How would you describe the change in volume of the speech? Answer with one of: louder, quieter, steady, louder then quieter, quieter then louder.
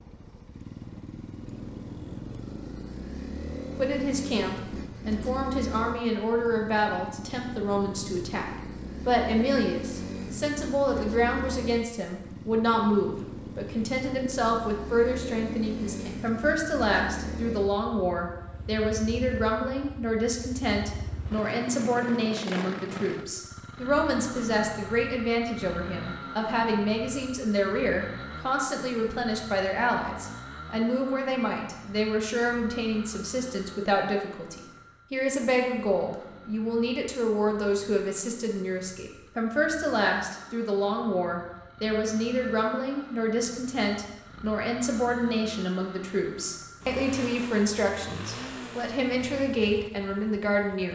steady.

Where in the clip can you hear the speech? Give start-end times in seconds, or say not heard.
3.8-50.9.